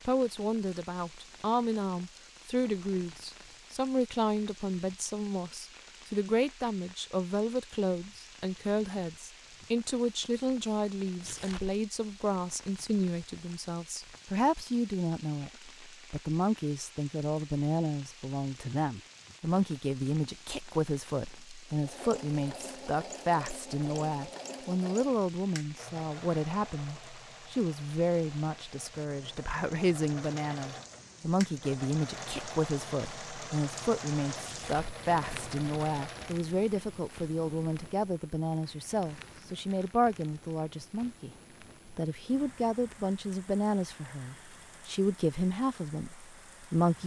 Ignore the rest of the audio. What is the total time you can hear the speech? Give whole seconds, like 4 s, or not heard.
46 s.